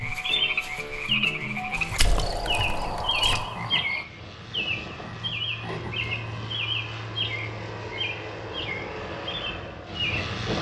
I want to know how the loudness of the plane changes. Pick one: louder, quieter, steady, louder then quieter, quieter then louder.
louder.